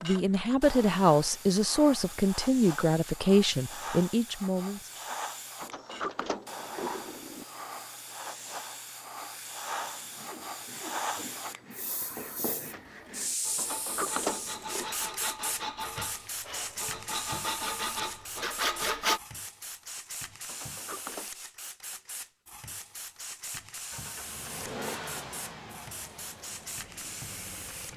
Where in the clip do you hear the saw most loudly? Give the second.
19 s.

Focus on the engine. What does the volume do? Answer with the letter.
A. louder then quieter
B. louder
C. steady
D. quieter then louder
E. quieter
E.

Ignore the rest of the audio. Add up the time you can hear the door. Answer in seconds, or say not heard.
4 s.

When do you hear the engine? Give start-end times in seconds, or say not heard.
23.9-27.9.